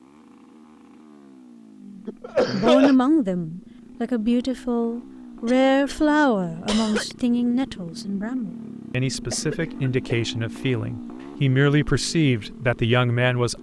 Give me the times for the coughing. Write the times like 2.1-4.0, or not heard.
2.0-3.0, 5.5-7.2, 9.3-10.2.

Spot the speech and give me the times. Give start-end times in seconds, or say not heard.
1.9-13.5.